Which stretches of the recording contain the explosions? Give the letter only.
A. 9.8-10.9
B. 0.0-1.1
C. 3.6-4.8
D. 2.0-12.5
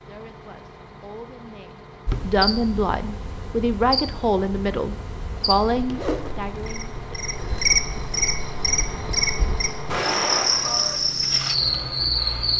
A.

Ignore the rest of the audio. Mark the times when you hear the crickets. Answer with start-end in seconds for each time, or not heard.
2.0-12.5.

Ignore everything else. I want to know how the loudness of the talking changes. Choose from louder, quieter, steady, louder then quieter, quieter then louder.
louder.